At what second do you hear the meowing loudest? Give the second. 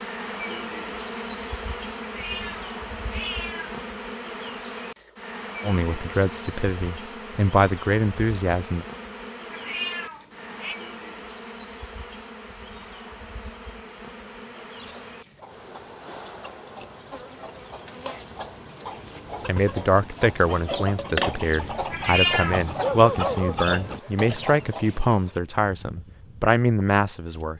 22 s.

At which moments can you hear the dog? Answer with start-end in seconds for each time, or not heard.
22.8-24.2.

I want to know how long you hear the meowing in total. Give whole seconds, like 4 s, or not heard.
4 s.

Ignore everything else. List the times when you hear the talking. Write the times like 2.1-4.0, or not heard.
5.6-8.8, 19.4-27.5.